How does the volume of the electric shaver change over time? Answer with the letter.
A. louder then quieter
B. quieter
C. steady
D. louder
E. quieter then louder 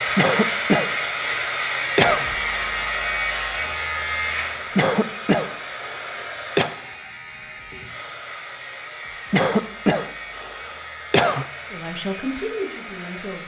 B.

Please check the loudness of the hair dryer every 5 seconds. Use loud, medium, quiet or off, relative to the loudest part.
loud, medium, medium.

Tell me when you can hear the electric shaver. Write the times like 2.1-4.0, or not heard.
0.0-13.4.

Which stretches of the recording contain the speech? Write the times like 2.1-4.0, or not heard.
11.7-13.4.